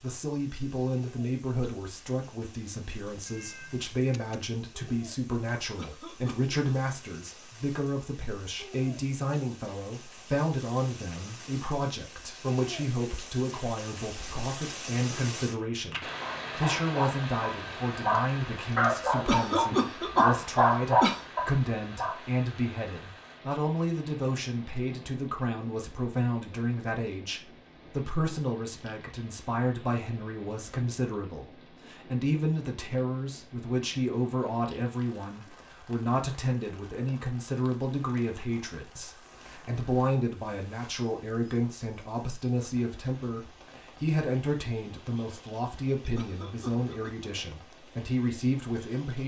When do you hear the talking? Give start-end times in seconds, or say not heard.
0.0-49.2.